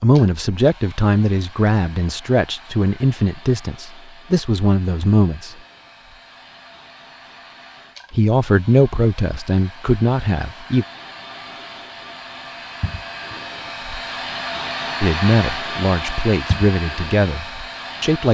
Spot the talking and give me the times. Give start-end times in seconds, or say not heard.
0.0-5.5, 8.1-10.8, 15.0-18.3.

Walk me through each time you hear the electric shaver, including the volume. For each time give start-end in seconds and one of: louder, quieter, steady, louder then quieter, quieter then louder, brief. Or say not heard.
not heard.